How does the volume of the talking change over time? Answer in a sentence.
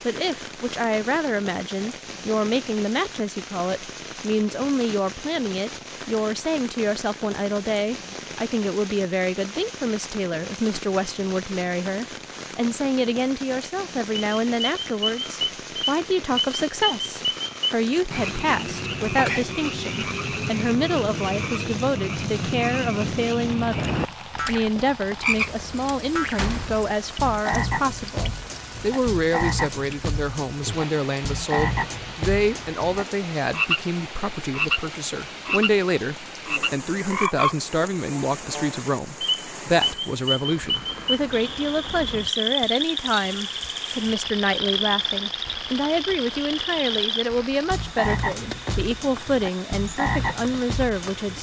The volume of the talking stays about the same.